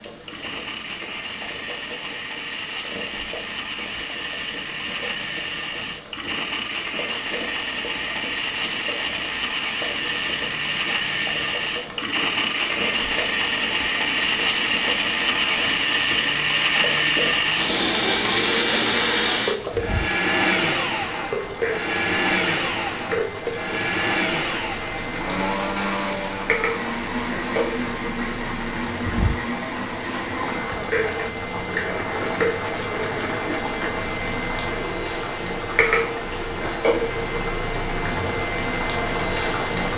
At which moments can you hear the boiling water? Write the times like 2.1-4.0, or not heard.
0.0-39.9.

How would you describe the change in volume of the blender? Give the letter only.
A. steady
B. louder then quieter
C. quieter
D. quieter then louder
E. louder
B.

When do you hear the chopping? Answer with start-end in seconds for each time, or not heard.
not heard.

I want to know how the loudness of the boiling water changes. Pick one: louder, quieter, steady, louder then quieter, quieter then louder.
louder.